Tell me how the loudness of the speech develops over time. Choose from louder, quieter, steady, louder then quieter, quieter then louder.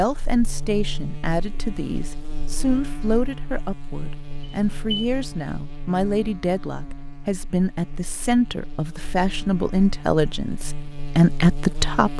louder.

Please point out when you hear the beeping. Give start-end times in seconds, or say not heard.
4.4-5.1.